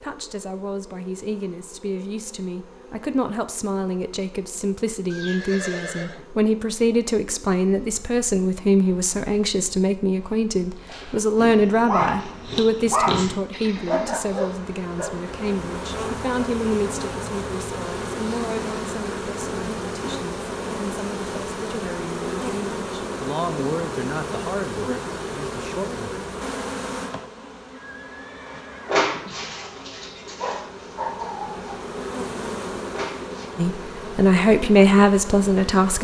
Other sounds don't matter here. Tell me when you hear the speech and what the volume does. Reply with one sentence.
You can hear the speech from 0.0 to 26.2 s, getting louder then quieter; and briefly from 33.5 to 35.9 s.